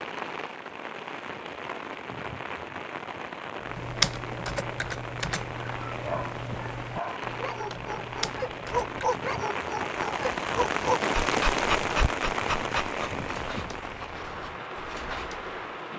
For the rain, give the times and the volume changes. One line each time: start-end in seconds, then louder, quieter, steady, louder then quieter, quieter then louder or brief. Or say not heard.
0.0-15.9 louder then quieter.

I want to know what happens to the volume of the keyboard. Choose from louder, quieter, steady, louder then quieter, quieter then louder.
quieter.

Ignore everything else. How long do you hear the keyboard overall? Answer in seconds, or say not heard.
6 s.